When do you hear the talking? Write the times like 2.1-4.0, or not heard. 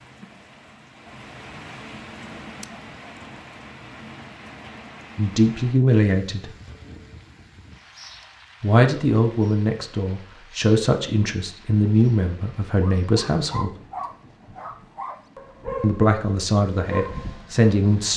5.2-6.5, 8.6-13.8, 15.8-18.1.